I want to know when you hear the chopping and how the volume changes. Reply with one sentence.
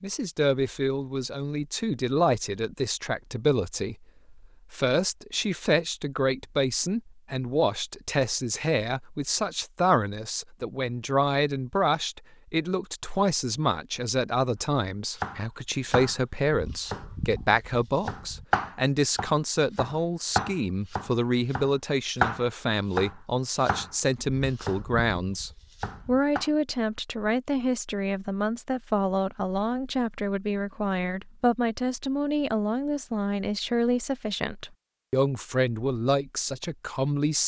You can hear the chopping from 15.2 to 26.5 s, getting louder then quieter.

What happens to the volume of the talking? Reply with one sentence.
The loudness of the talking stays about the same.